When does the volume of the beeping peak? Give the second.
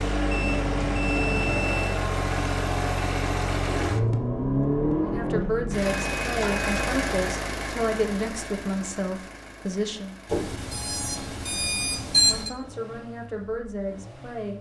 12 s.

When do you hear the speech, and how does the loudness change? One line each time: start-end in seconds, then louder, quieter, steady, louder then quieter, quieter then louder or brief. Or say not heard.
5.0-10.2 steady
12.1-14.5 brief.